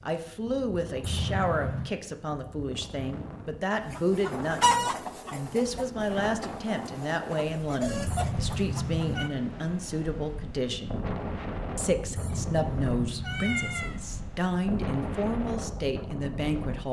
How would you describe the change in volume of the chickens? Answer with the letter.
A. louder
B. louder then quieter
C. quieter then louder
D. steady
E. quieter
C.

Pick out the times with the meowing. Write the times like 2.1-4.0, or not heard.
1.0-1.9, 8.1-9.3, 12.2-13.9.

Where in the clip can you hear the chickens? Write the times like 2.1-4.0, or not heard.
3.9-9.3.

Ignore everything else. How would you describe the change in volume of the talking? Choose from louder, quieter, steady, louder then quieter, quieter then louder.
steady.